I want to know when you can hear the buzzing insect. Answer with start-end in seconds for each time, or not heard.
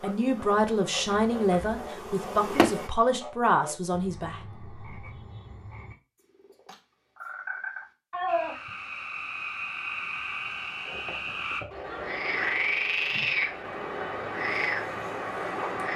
0.0-2.9.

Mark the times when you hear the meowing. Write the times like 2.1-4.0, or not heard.
0.6-1.9, 8.1-8.7, 10.8-12.2.